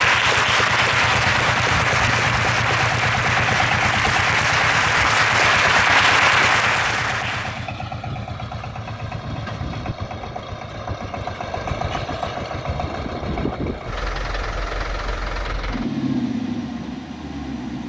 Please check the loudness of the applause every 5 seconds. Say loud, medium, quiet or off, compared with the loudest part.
loud, loud, off, off.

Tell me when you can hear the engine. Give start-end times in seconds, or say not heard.
0.0-17.8.